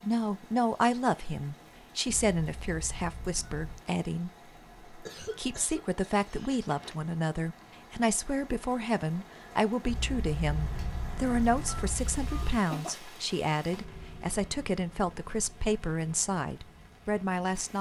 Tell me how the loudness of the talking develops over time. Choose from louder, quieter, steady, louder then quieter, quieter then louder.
steady.